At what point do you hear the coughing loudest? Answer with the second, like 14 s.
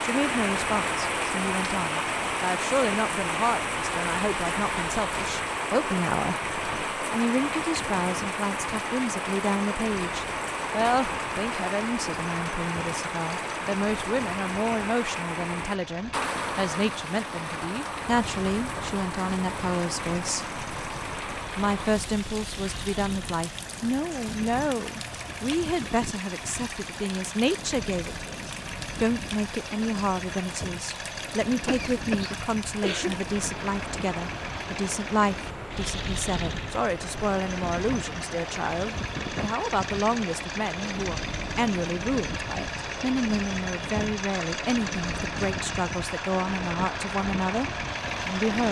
33 s.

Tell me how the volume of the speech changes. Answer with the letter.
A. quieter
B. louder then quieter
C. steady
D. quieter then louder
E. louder
C.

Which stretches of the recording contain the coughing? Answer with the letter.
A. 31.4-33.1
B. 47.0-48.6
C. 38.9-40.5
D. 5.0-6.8
A.